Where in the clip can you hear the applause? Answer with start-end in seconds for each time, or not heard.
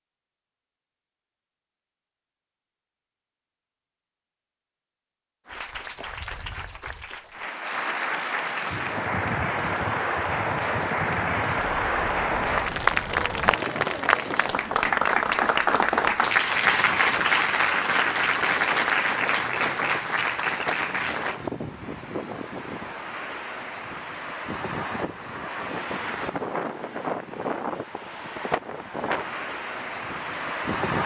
5.5-21.4.